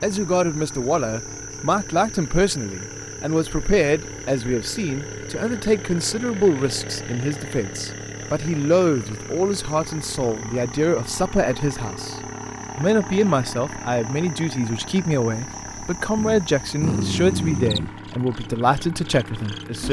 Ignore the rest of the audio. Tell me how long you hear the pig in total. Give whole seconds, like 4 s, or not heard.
not heard.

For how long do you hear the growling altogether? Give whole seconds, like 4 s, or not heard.
2 s.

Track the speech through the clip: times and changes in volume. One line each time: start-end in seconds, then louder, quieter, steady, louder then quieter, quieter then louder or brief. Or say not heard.
0.0-19.8 steady.